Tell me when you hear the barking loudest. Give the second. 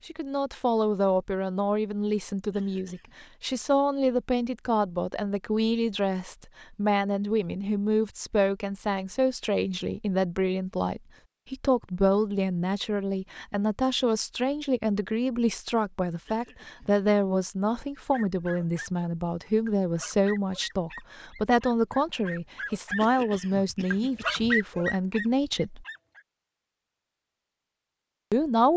24 s.